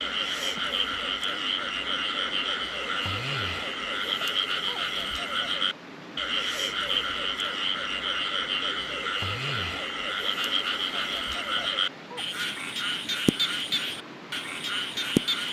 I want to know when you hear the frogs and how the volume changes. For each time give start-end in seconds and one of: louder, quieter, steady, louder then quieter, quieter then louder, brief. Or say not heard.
0.0-15.4 steady.